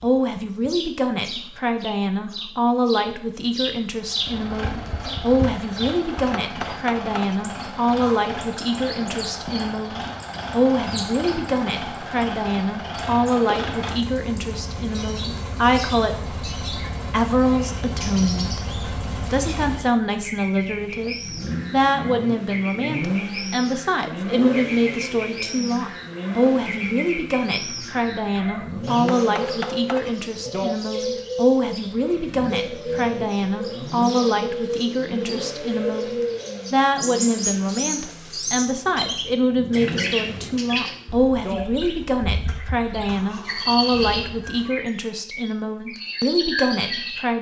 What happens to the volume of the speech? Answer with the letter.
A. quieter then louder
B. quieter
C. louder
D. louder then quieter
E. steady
E.